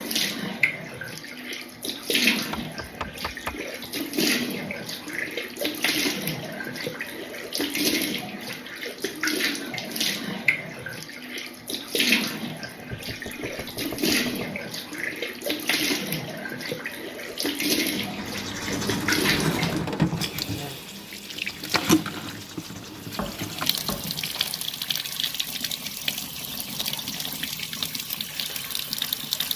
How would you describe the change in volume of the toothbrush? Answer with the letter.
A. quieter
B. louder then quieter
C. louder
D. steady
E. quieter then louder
A.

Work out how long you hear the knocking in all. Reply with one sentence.
The knocking can be heard for 4 seconds in total.